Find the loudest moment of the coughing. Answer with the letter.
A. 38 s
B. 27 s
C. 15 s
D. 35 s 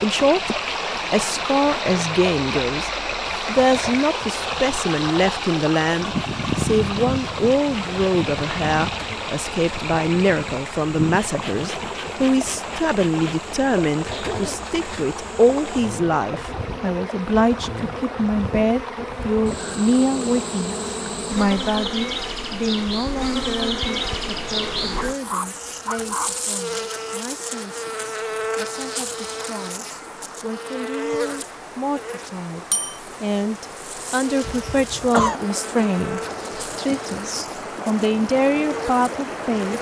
D.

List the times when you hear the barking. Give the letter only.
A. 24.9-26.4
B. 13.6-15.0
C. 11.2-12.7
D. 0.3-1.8
A.